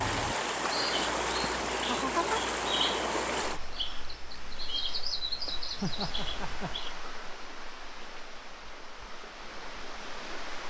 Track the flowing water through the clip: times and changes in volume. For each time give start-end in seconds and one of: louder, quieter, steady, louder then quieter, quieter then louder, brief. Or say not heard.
0.0-10.6 quieter.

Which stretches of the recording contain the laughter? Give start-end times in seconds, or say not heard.
1.4-2.9, 5.8-6.7.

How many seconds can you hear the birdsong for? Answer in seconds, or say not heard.
7 s.